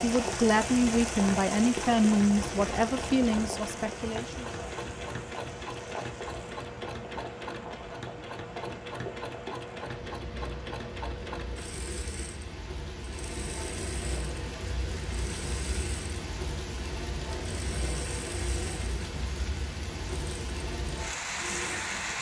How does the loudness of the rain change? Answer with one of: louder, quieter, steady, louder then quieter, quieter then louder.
quieter then louder.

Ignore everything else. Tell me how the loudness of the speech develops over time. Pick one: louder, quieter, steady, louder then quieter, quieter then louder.
quieter.